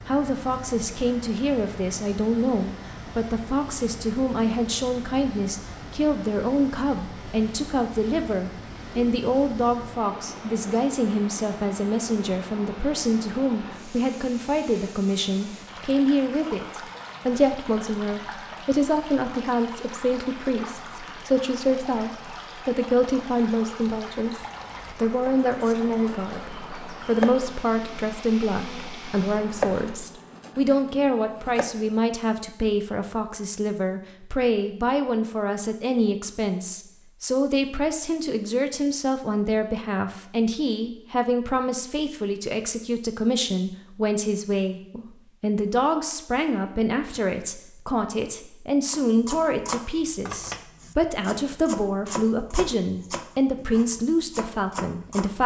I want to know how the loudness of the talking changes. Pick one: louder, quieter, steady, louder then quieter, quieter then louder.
steady.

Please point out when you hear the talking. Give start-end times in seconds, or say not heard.
0.1-55.4.